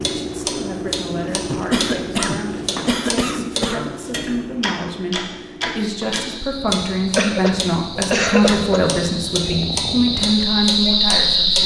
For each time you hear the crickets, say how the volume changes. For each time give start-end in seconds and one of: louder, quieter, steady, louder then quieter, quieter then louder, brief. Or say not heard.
5.8-11.6 louder.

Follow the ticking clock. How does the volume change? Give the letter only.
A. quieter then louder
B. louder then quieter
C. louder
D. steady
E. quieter
D.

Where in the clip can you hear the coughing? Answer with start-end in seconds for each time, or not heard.
1.5-4.2, 7.2-8.9.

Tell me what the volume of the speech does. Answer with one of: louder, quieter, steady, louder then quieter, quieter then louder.
louder.